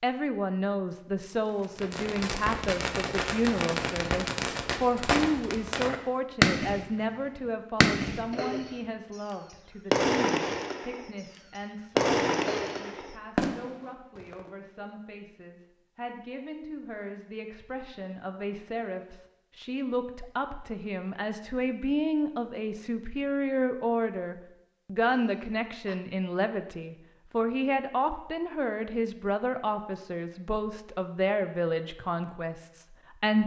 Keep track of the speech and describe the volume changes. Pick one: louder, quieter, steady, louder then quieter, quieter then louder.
quieter then louder.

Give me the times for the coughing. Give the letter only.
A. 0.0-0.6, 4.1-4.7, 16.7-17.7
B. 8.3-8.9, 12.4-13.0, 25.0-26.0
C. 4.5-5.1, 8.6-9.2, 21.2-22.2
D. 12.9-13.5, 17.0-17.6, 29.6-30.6
B.